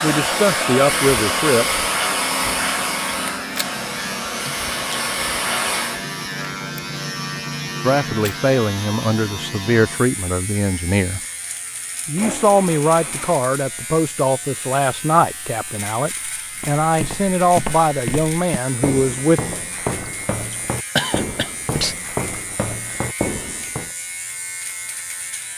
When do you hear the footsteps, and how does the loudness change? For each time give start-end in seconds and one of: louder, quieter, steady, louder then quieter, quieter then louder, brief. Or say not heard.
16.6-23.9 steady.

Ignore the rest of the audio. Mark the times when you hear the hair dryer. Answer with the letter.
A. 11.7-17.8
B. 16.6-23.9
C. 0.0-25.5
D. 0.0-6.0
D.